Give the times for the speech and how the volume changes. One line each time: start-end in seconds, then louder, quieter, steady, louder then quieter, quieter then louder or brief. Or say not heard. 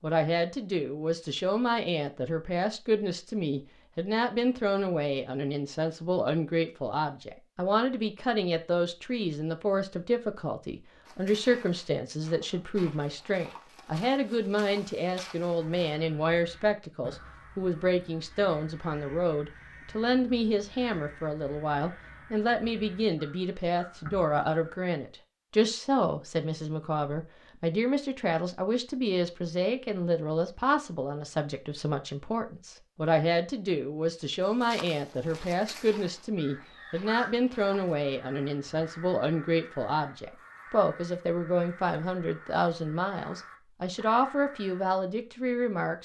0.0-45.9 steady.